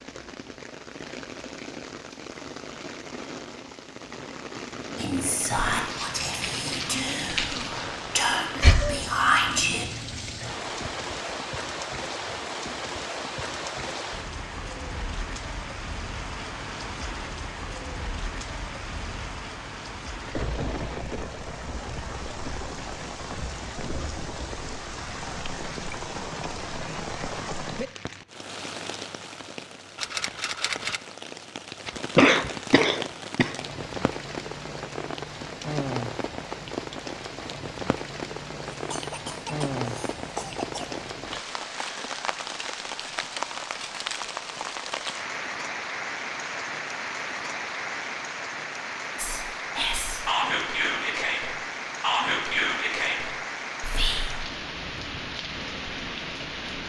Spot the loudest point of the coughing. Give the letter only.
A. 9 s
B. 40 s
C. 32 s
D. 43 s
C.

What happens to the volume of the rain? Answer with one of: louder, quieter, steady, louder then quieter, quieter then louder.
steady.